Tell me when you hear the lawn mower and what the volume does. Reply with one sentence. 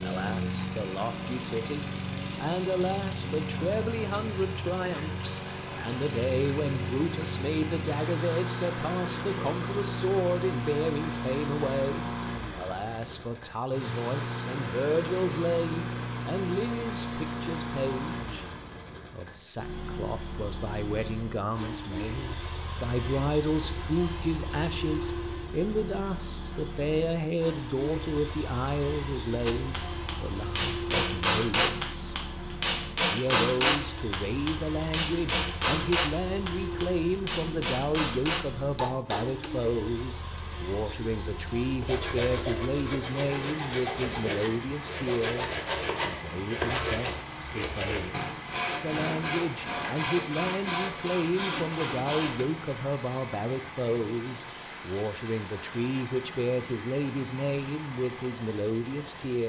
The lawn mower can be heard from 0.0 to 59.4 s, getting quieter.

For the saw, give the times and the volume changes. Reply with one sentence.
You can hear the saw from 41.8 to 52.5 s, at a steady volume.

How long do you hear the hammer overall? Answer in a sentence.
The hammer can be heard for 10 seconds in total.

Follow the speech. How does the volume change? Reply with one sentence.
The loudness of the speech stays about the same.